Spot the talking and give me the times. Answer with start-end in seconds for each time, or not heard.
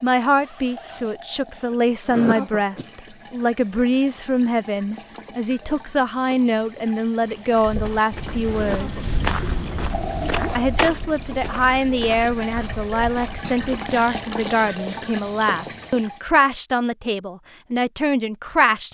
0.0-9.2, 10.6-18.8.